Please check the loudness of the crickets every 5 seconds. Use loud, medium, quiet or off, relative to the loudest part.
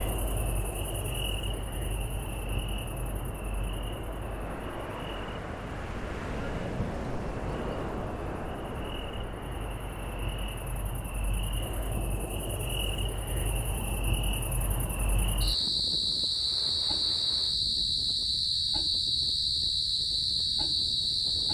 medium, quiet, medium, loud, loud.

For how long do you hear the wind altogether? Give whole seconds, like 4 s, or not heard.
21 s.